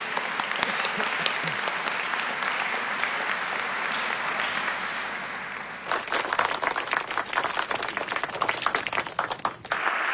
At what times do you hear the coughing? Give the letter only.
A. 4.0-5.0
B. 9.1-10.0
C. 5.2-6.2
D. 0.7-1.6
D.